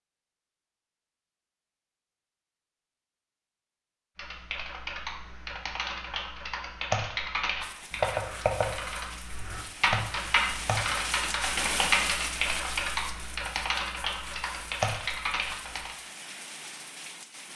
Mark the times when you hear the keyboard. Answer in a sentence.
You can hear the keyboard from 4.2 to 15.9 s.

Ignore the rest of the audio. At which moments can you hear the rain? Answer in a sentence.
You can hear the rain from 7.6 to 17.5 s.